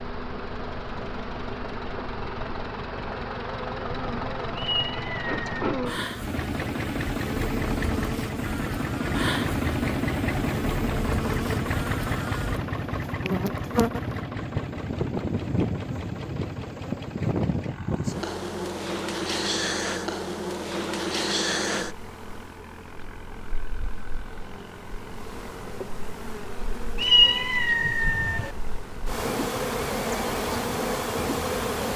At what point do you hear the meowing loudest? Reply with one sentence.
The loudest moment of the meowing is at 27 seconds.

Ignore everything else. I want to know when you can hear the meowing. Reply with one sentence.
The meowing can be heard from 4.5 to 5.5 s and from 26.9 to 28.5 s.